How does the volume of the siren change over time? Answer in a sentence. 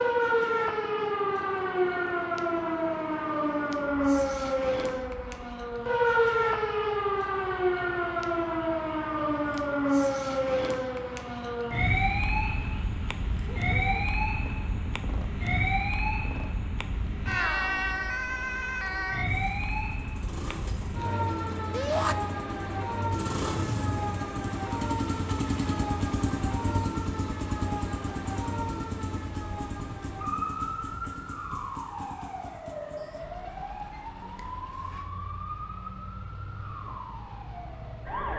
The volume of the siren goes down.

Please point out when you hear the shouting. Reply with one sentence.
You can hear the shouting from 21.7 to 22.1 s.